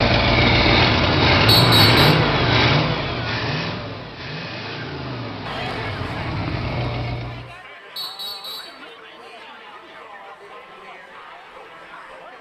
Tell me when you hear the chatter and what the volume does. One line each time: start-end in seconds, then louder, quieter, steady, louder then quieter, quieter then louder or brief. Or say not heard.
5.4-12.3 quieter.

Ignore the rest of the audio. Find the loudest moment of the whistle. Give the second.
2 s.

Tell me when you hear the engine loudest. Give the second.
2 s.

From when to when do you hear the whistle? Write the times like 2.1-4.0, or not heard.
1.4-2.1, 8.0-8.8.